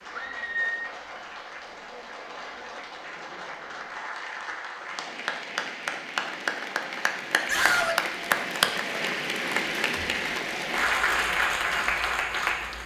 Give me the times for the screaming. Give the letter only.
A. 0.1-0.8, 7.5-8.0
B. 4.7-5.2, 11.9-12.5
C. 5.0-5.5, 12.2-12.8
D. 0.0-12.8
A.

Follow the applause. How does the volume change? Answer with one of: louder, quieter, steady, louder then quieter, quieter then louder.
louder.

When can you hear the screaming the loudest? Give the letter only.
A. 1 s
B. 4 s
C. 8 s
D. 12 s
C.